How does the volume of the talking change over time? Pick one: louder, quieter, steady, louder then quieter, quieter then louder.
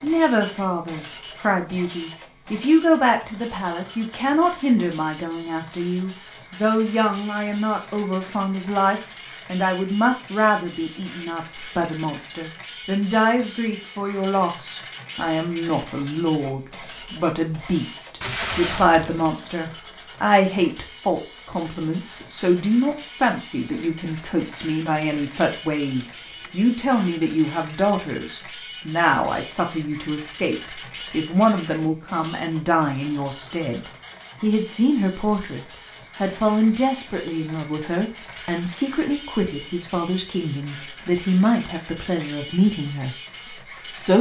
steady.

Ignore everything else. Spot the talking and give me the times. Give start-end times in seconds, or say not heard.
0.0-44.1.